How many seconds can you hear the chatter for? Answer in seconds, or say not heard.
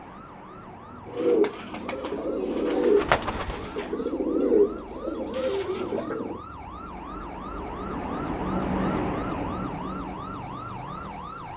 not heard.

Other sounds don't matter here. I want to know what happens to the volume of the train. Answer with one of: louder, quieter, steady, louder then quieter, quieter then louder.
louder.